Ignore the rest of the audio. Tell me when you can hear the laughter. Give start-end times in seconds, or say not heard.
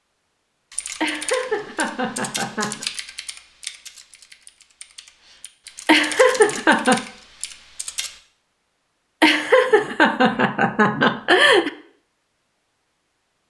1.0-2.9, 5.8-7.0, 9.2-11.7.